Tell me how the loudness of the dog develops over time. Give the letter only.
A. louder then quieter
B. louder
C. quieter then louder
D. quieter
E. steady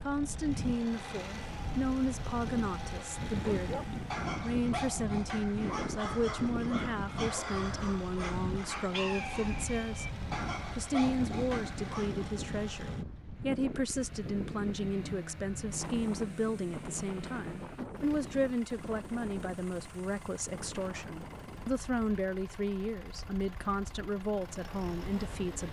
E.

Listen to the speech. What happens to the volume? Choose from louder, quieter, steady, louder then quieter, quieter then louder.
steady.